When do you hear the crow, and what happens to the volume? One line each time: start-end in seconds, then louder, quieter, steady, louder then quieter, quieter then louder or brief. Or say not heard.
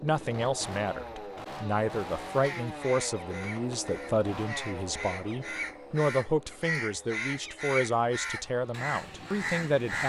2.4-10.0 louder.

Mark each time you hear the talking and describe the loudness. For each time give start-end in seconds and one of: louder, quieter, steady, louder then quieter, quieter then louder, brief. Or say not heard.
0.0-10.0 steady.